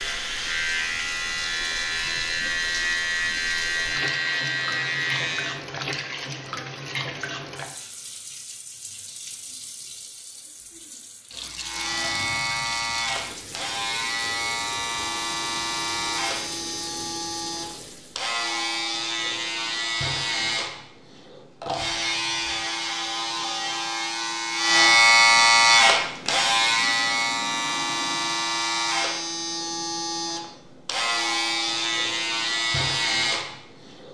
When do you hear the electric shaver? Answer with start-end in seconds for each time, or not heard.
0.0-5.6, 11.6-34.0.